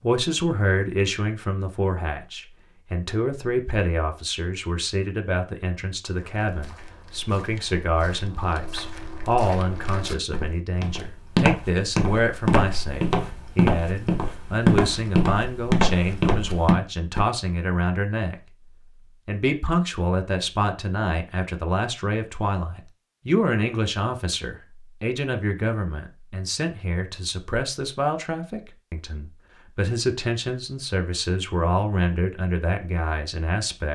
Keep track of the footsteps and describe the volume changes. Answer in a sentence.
The volume of the footsteps goes up.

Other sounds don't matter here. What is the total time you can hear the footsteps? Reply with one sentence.
You can hear the footsteps for 11 seconds altogether.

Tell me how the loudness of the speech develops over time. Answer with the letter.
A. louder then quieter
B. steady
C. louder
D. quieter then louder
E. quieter
B.